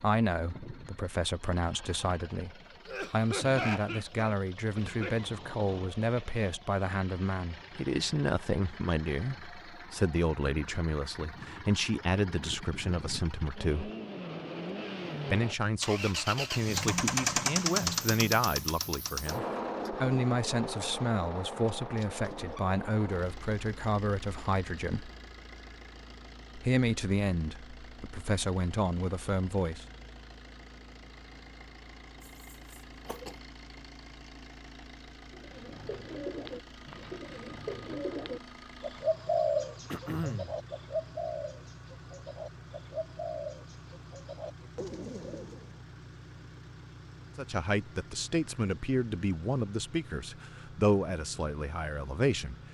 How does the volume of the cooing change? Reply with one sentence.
The volume of the cooing goes up, then down.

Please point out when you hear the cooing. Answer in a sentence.
The cooing can be heard from 35.3 to 45.8 s.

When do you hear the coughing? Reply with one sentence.
The coughing can be heard from 2.9 to 5.3 s, from 32.5 to 33.4 s and from 39.9 to 40.5 s.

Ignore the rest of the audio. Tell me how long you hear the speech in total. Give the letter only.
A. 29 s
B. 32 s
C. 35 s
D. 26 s
B.